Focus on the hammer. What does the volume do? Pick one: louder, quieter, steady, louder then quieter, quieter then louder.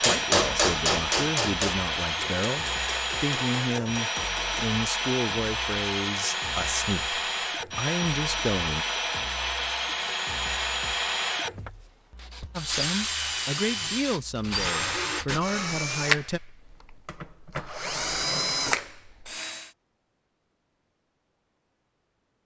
quieter.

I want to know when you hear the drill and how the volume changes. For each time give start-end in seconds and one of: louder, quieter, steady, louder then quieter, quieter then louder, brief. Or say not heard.
0.0-19.8 steady.